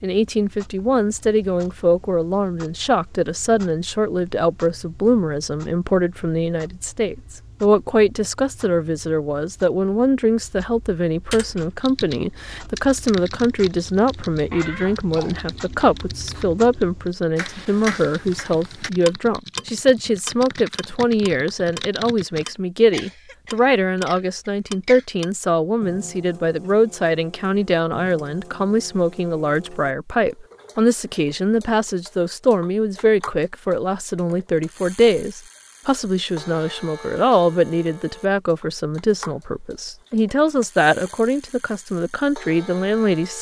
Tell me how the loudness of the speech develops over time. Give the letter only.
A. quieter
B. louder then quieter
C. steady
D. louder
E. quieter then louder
C.